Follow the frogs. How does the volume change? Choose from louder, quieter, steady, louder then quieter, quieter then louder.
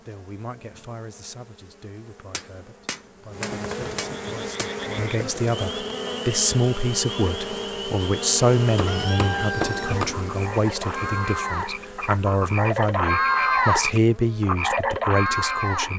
louder.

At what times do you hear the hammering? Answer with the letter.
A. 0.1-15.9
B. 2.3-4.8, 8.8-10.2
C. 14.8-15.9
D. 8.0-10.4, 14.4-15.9
B.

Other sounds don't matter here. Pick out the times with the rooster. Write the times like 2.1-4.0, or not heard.
8.8-10.1.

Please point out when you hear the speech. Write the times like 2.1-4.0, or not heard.
0.1-15.9.